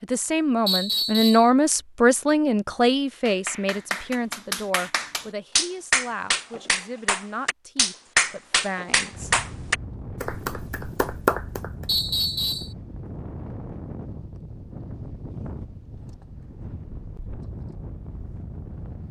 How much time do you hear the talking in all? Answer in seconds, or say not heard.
9 s.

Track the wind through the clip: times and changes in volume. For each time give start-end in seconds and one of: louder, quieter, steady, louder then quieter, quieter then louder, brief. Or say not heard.
9.1-19.0 steady.